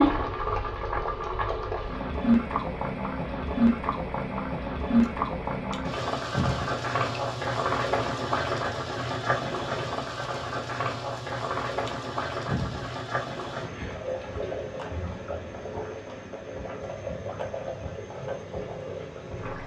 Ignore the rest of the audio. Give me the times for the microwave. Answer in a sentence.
You can't hear the microwave here.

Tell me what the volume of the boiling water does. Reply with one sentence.
The loudness of the boiling water goes down.